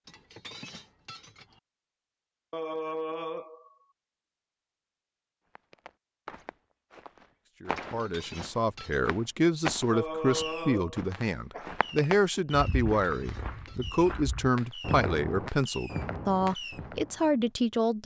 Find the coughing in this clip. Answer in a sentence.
The coughing can be heard from 2.5 to 3.8 s and from 9.9 to 11.8 s.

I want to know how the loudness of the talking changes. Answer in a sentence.
The volume of the talking stays about the same.